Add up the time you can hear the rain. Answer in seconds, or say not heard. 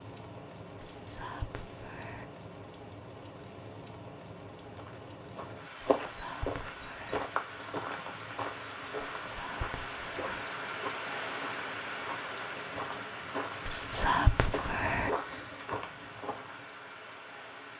18 s.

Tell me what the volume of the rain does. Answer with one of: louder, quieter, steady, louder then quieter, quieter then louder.
louder then quieter.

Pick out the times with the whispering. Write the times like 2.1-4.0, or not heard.
0.8-2.2, 5.8-7.2, 9.0-10.4, 13.7-15.1.